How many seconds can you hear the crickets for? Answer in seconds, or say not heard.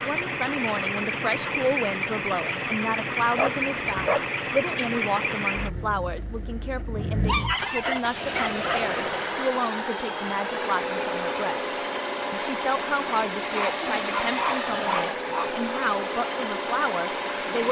not heard.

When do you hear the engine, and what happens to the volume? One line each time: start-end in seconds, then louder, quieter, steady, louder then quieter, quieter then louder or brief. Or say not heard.
0.0-17.6 steady.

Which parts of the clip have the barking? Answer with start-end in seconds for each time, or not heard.
3.4-4.3, 7.2-8.9, 13.5-15.5.